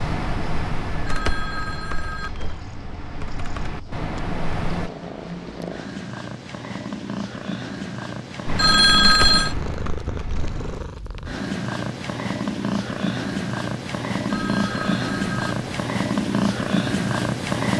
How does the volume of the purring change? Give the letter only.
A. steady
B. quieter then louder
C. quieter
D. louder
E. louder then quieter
D.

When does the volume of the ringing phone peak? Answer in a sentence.
The loudest moment of the ringing phone is at 9 seconds.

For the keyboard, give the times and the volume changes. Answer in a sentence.
You can hear the keyboard from 0.0 to 4.9 s, getting quieter then louder; and briefly from 8.4 to 10.8 s.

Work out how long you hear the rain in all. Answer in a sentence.
You can't hear the rain here.